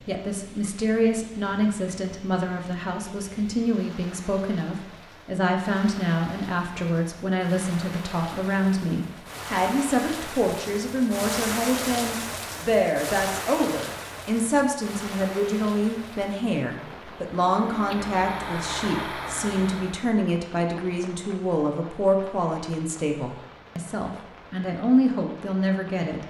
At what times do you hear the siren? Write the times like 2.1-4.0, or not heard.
not heard.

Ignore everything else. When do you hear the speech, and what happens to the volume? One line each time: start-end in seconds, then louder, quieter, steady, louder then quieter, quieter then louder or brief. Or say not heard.
0.1-26.2 steady.